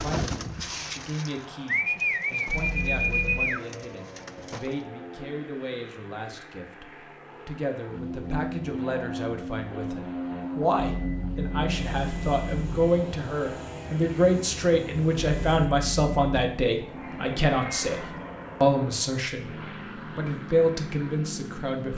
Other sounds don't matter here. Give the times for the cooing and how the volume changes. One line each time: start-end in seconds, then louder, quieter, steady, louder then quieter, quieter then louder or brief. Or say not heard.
0.0-4.8 louder then quieter.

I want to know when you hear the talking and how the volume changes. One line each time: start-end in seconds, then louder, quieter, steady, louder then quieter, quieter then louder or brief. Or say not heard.
0.0-21.9 louder.